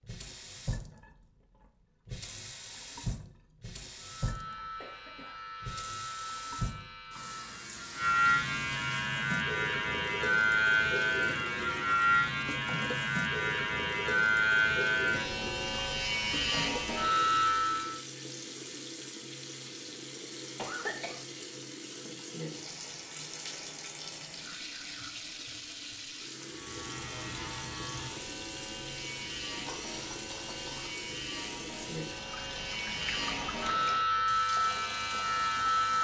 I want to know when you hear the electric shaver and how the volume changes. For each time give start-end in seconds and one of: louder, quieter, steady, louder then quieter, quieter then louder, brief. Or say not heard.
4.0-18.0 louder
26.4-35.9 louder.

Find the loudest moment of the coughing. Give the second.
21 s.